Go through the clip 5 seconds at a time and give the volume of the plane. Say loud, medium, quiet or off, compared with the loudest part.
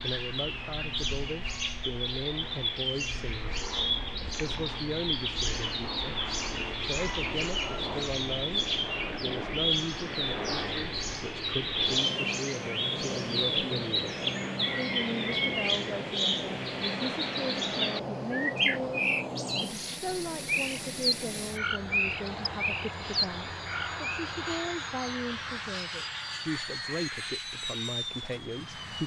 medium, loud, loud, loud, loud, loud.